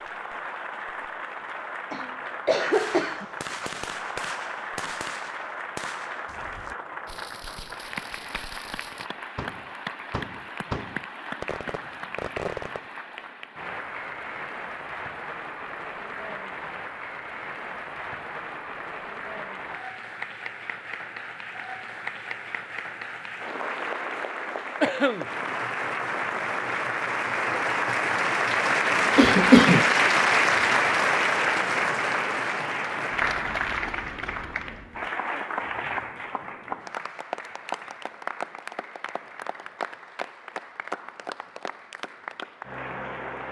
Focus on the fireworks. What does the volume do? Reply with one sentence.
The loudness of the fireworks goes down, then up.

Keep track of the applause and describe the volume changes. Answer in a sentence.
The loudness of the applause goes up, then down.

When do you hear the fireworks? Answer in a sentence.
You can hear the fireworks from 2.7 to 12.9 s.